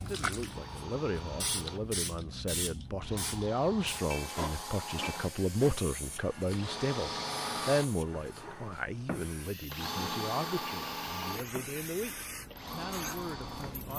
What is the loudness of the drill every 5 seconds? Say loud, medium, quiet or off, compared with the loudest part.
medium, loud, loud.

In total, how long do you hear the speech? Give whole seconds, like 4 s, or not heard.
14 s.